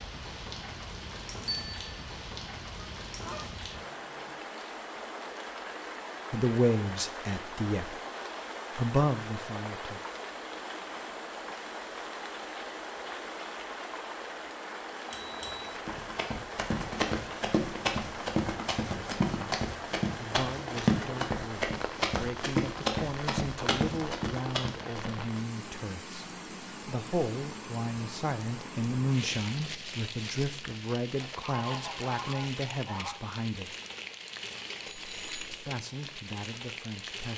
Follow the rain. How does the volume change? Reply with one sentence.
The loudness of the rain stays about the same.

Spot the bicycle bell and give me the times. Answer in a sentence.
The bicycle bell can be heard from 1.4 to 1.9 s, from 15.1 to 15.8 s and from 34.9 to 35.7 s.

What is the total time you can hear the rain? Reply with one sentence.
The rain can be heard for 37 seconds in total.